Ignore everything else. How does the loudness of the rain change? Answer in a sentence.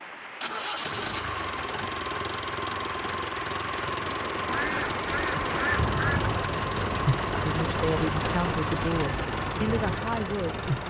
The loudness of the rain goes up.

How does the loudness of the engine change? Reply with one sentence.
The loudness of the engine stays about the same.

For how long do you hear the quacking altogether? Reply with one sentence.
The quacking can be heard for 2 seconds in total.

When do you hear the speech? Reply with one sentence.
You can hear the speech from 7.4 to 10.8 s.